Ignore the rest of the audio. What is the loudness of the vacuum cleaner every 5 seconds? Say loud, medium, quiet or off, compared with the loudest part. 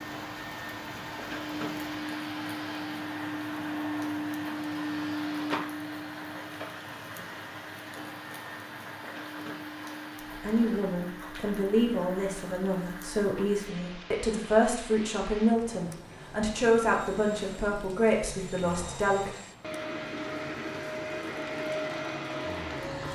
loud, loud, medium, medium, loud.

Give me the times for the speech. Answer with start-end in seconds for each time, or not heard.
10.4-19.4.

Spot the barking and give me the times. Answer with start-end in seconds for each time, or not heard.
not heard.